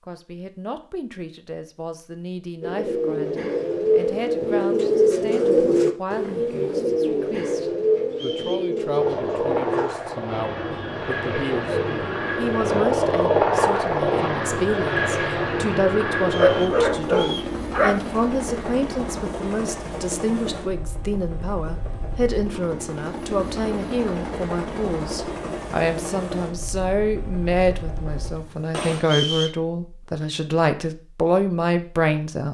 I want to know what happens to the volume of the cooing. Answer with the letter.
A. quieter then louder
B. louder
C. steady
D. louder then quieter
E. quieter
E.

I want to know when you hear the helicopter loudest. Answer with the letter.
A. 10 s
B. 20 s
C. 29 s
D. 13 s
D.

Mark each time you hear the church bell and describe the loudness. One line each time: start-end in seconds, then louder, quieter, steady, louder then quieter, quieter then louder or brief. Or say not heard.
not heard.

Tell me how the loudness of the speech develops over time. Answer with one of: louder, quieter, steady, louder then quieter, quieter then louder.
louder.